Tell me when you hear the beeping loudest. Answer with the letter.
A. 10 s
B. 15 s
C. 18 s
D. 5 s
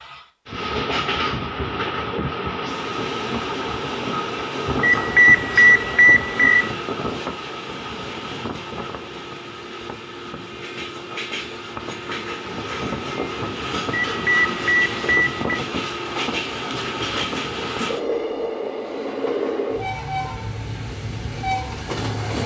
D.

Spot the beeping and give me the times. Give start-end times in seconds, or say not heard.
4.8-6.7, 13.9-15.6.